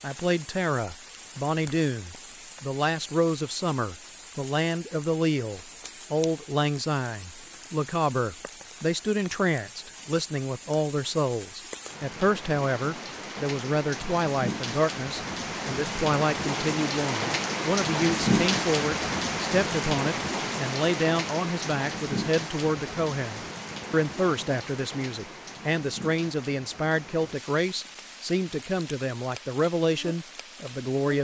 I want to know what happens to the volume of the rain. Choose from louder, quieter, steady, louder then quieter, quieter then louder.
louder then quieter.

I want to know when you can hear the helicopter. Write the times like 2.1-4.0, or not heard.
not heard.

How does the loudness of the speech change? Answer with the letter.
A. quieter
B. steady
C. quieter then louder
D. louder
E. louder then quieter
B.